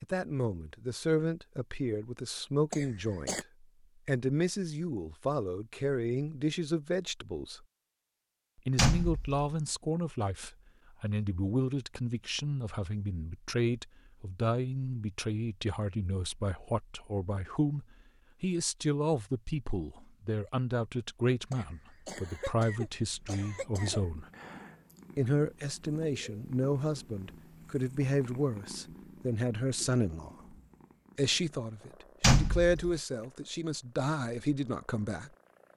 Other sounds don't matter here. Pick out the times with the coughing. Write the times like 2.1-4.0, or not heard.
2.7-3.5, 21.5-24.1.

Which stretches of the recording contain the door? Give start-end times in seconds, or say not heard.
8.8-9.5, 32.2-32.9.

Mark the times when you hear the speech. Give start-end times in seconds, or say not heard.
0.0-7.6, 8.7-24.2, 25.1-30.6, 31.1-35.3.